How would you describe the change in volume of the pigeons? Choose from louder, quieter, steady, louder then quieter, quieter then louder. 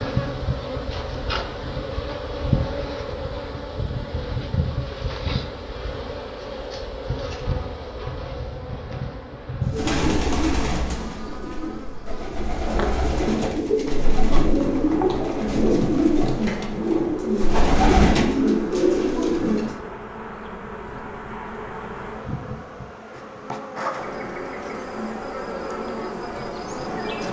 louder.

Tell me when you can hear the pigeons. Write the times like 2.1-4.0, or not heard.
9.7-19.8.